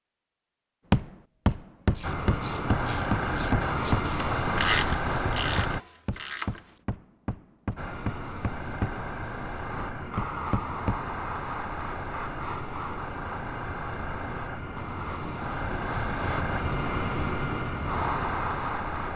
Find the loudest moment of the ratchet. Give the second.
5 s.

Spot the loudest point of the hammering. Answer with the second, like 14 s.
1 s.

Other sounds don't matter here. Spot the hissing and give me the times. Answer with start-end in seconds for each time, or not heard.
2.0-5.8, 7.8-19.1.